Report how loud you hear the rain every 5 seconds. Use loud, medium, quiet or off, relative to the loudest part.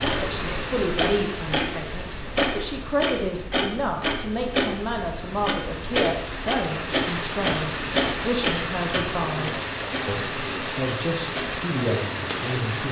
medium, loud, loud.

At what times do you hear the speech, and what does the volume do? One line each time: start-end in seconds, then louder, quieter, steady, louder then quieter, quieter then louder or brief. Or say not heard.
0.0-12.8 steady.